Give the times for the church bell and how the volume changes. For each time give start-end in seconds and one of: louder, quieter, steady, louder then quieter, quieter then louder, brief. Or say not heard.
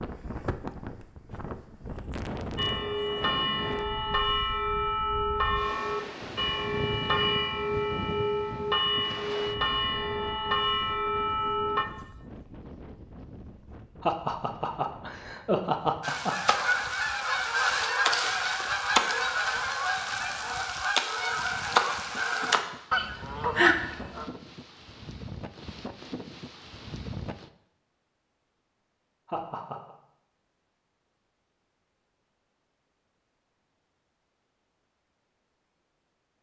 2.5-11.8 steady.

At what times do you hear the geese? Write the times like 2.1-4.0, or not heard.
16.0-24.2.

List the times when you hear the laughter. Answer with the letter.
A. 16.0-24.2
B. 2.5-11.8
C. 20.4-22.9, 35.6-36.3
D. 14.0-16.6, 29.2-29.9
D.